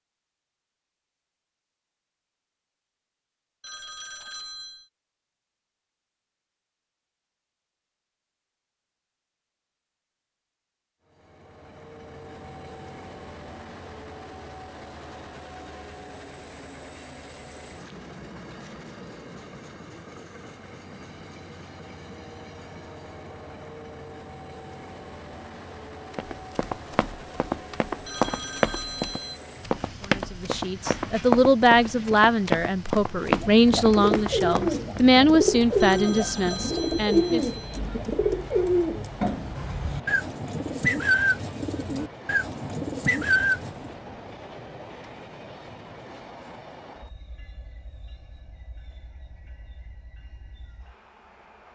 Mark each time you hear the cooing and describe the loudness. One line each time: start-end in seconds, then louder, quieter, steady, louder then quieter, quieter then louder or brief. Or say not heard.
33.2-44.0 steady.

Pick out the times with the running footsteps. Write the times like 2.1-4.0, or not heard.
26.1-35.0.